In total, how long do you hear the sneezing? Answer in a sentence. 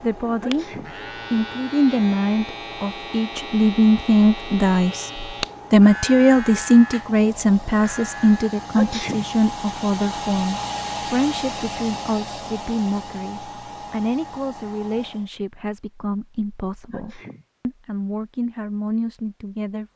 The sneezing can be heard for 2 seconds in total.